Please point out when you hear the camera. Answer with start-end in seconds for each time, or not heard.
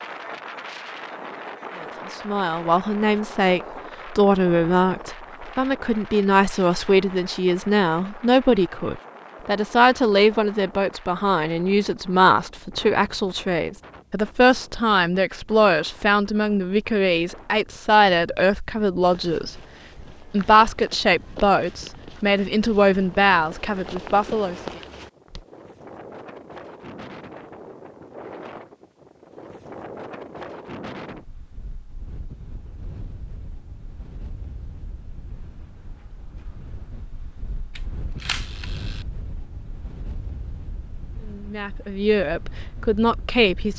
37.8-39.0.